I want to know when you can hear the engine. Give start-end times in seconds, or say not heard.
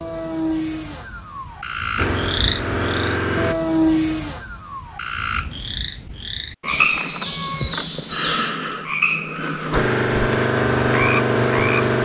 1.9-3.5, 9.7-12.0.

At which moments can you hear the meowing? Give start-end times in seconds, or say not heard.
7.2-7.8.